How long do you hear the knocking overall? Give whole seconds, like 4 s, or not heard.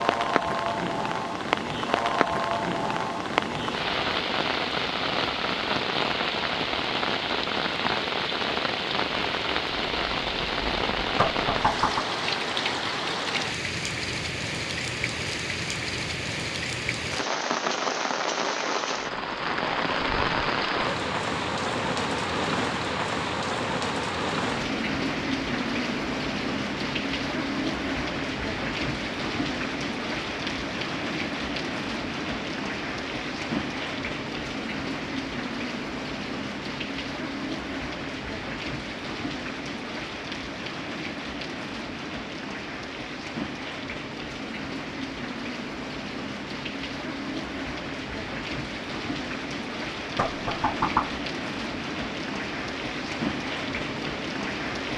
2 s.